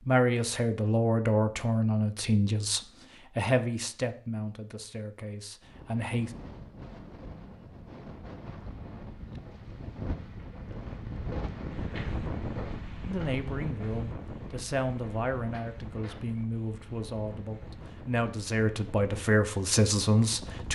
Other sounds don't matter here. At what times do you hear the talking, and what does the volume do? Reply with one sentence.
You can hear the talking from 0.1 to 6.3 s, getting quieter; and from 13.1 to 20.7 s, getting louder.